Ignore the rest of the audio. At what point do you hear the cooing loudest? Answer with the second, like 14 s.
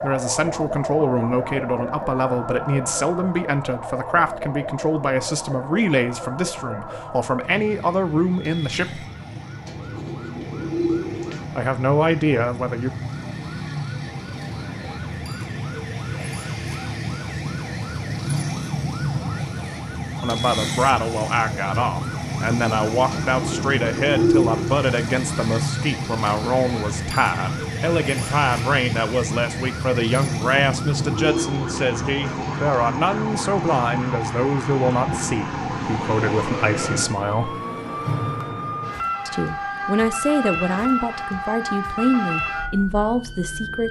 24 s.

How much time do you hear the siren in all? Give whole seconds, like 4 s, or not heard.
44 s.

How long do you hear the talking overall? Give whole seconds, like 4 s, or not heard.
32 s.